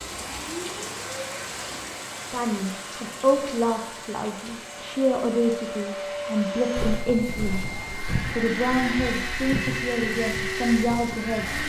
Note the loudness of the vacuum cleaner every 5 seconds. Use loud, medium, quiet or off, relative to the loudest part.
medium, loud, loud.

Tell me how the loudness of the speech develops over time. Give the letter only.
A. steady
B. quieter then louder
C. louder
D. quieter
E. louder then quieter
A.